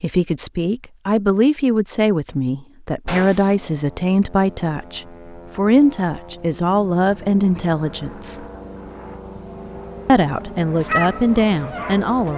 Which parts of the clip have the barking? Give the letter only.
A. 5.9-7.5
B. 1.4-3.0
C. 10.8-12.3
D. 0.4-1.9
C.